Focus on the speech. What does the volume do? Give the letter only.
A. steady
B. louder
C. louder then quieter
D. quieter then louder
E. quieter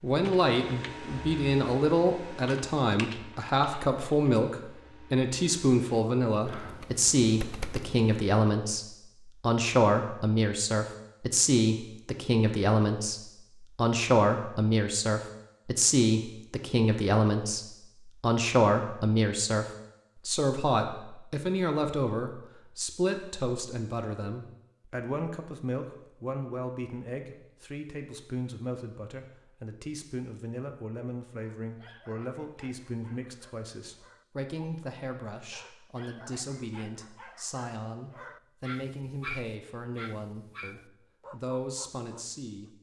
E.